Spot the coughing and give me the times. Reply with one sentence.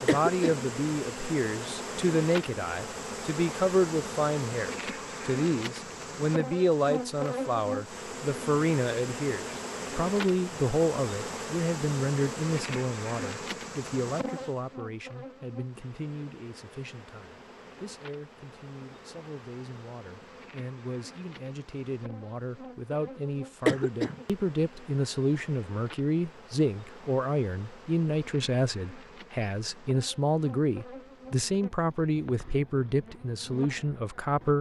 The coughing can be heard from 0.1 to 0.7 s and from 23.6 to 24.2 s.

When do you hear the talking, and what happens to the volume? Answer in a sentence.
You can hear the talking from 0.0 to 34.5 s, getting quieter then louder.